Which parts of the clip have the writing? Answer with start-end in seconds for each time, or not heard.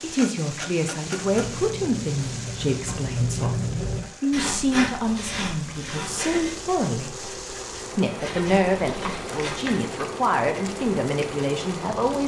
1.1-9.8.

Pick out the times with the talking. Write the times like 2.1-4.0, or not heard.
0.0-7.2, 8.0-12.2.